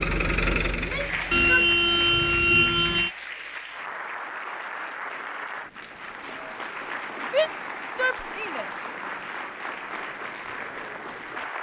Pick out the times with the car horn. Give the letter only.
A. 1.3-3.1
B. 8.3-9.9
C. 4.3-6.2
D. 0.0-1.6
A.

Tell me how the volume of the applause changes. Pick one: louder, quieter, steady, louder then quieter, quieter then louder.
steady.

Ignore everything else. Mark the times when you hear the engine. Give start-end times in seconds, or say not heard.
0.0-1.6.